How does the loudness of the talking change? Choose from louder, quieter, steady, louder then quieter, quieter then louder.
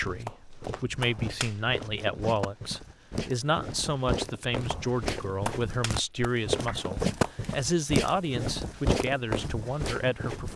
steady.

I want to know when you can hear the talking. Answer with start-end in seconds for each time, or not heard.
0.0-10.5.